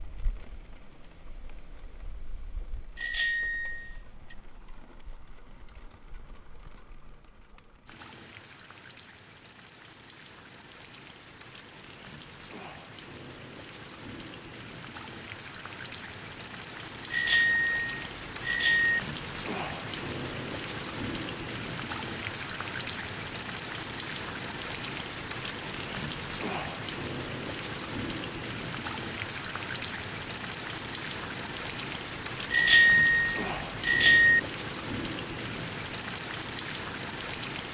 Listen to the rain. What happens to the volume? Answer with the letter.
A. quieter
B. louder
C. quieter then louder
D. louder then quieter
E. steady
B.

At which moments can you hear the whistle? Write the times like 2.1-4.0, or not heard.
not heard.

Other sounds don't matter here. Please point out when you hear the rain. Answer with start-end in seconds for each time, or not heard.
0.0-37.7.